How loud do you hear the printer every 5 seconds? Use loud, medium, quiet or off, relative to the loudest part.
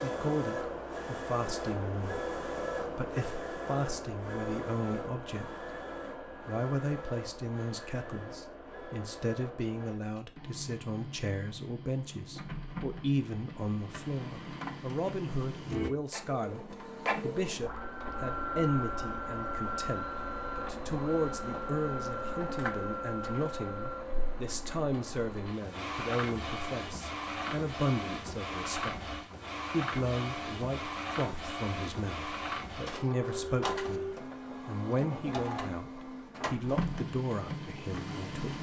loud, medium, medium, loud, loud, loud, loud, loud.